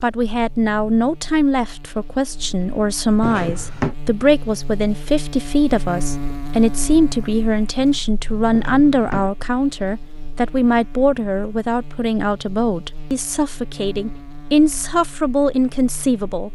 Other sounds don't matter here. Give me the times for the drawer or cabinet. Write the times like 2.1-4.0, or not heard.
3.2-4.0, 8.5-9.3.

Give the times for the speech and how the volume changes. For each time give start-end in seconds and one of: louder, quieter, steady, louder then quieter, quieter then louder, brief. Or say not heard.
0.0-16.5 steady.